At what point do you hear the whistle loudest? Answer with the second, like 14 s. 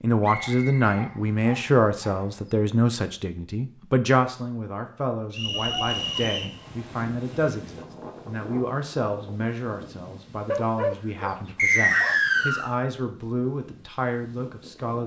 12 s.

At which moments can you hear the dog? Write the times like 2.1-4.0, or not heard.
0.3-2.5, 5.5-6.3, 10.4-12.2.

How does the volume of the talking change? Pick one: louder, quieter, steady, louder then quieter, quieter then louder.
quieter.